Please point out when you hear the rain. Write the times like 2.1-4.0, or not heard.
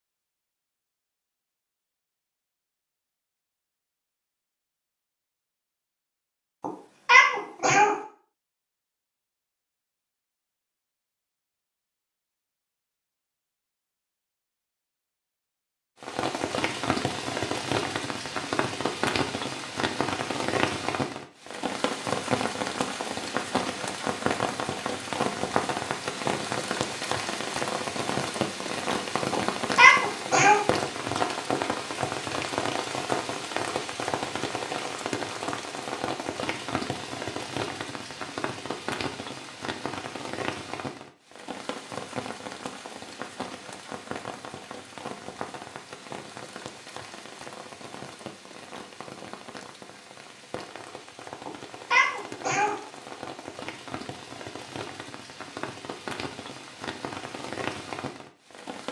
16.0-58.8.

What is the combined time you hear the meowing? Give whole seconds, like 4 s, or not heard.
4 s.